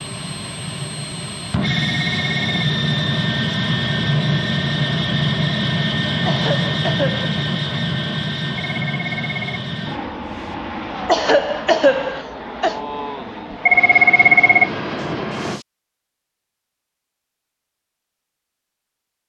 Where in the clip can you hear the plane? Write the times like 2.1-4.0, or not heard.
0.0-15.7.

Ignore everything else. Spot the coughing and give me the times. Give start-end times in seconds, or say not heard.
6.2-7.2, 11.1-12.8.